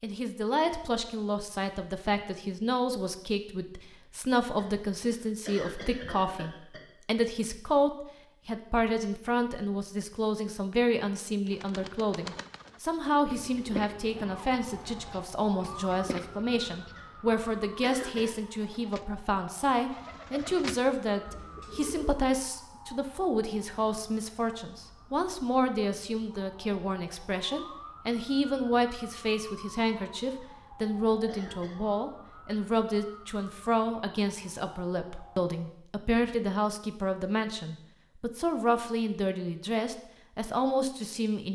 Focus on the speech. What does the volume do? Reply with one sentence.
The loudness of the speech stays about the same.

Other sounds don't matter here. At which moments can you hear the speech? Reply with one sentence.
The speech can be heard from 0.0 to 41.5 s.